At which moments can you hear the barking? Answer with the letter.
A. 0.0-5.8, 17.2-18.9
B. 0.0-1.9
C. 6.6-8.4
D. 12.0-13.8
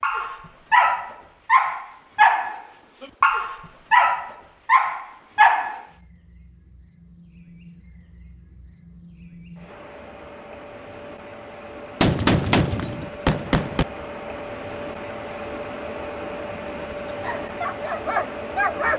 A.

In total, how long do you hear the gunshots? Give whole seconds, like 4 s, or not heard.
2 s.